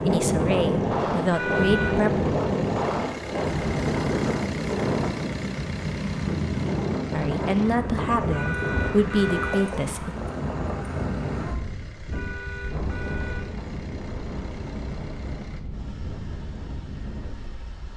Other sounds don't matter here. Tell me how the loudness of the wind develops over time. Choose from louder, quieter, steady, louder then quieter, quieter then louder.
quieter.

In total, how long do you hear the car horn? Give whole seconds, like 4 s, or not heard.
3 s.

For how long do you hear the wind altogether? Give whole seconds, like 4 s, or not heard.
18 s.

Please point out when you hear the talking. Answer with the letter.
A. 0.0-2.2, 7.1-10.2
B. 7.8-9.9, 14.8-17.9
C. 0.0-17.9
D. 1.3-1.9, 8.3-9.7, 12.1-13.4
A.